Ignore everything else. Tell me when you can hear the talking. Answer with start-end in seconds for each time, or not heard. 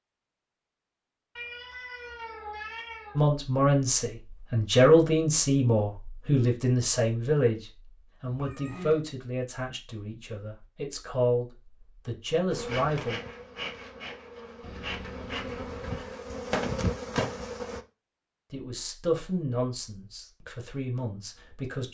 3.1-13.2, 18.5-21.8.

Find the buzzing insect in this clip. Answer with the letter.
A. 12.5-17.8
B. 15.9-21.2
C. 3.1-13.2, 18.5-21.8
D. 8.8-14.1
A.